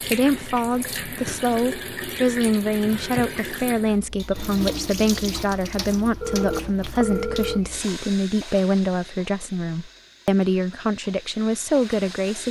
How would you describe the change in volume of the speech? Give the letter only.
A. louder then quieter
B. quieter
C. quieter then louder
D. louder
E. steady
E.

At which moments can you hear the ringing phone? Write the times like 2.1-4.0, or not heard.
6.2-7.6.